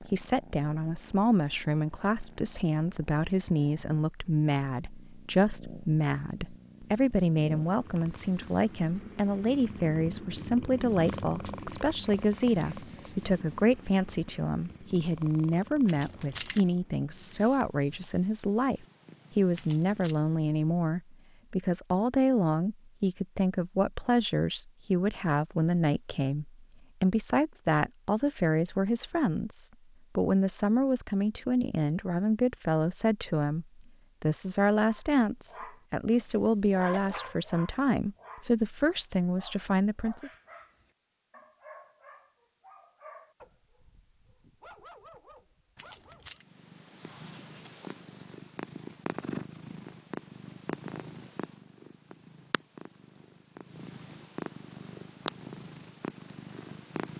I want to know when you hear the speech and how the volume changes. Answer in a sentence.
You can hear the speech from 0.0 to 40.4 s, at a steady volume.